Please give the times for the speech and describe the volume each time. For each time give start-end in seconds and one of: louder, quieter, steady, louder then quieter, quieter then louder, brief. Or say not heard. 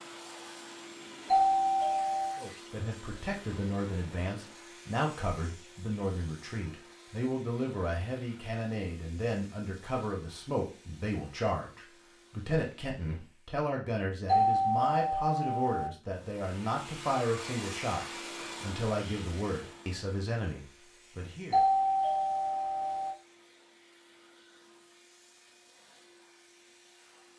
2.4-21.6 steady.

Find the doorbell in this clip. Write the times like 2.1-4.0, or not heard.
1.2-2.5, 14.2-15.9, 21.5-23.1.